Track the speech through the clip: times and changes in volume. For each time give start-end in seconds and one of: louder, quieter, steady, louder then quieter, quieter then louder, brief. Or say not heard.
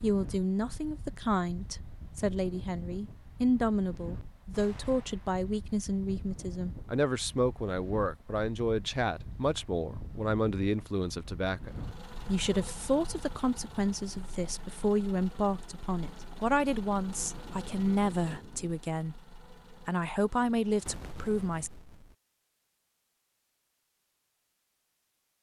0.0-21.7 steady.